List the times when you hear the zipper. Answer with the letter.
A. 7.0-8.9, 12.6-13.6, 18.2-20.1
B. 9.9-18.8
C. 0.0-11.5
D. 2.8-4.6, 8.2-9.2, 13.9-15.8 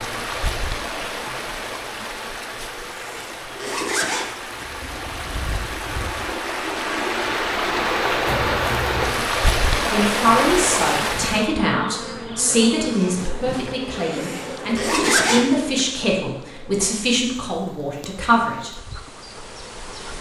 D.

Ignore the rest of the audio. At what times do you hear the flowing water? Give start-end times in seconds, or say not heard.
0.0-11.5.